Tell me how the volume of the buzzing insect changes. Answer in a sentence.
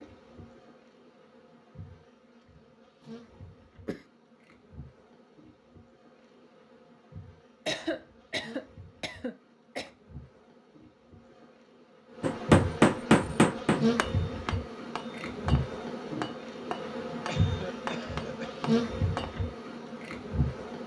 The loudness of the buzzing insect goes up.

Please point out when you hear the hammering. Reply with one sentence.
The hammering can be heard from 12.2 to 19.4 s.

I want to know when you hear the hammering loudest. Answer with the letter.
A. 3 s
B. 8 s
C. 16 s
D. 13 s
D.